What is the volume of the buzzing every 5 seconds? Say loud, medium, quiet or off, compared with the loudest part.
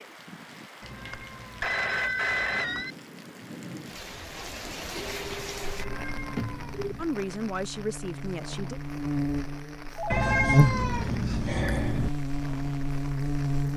off, medium, loud.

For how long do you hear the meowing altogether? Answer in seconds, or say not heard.
5 s.